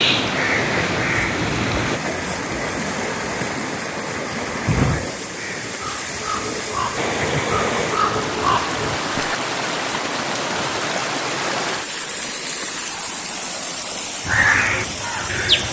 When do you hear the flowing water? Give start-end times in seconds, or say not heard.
0.0-15.6.